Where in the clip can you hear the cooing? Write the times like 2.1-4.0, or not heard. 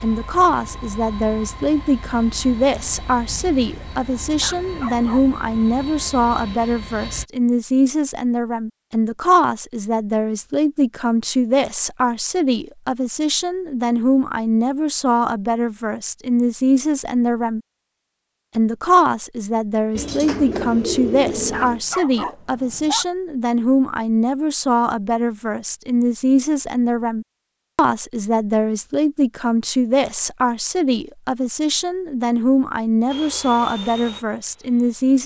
19.9-21.8.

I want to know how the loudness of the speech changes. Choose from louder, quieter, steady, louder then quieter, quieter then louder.
steady.